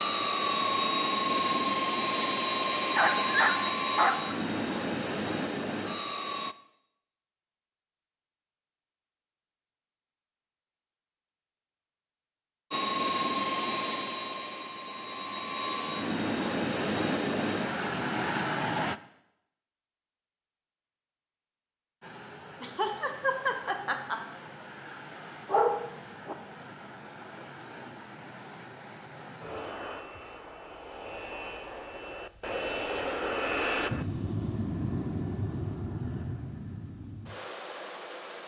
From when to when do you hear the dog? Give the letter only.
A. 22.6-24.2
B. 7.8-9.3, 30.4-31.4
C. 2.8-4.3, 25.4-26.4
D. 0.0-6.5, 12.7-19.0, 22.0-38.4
C.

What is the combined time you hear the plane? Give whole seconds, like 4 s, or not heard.
29 s.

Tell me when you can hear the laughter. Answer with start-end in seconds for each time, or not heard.
22.6-24.2.